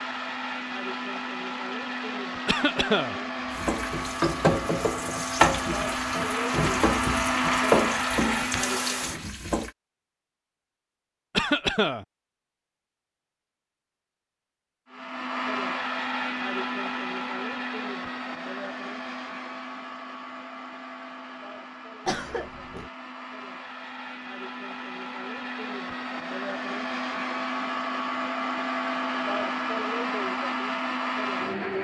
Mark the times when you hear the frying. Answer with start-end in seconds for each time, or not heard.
0.0-9.7.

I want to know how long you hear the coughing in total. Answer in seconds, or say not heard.
2 s.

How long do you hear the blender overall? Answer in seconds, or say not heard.
26 s.